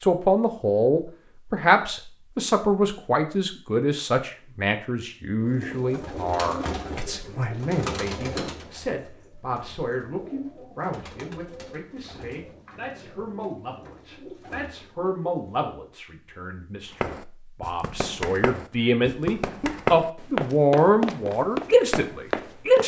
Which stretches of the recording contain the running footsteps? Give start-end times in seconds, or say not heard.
16.9-22.8.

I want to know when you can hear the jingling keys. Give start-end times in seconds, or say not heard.
not heard.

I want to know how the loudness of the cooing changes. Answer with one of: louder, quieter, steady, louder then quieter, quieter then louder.
quieter.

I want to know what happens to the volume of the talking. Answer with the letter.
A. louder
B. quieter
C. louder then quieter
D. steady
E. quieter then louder
E.